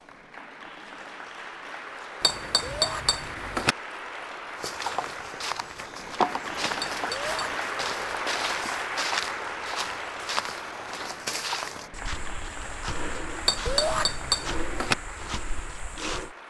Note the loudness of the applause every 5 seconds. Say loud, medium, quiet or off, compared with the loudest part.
medium, loud, medium, medium.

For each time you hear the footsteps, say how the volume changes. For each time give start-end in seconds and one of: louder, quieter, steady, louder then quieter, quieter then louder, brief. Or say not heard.
4.5-16.4 quieter.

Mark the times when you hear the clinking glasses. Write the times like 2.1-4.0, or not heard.
2.2-3.8, 6.8-7.5, 13.4-14.9.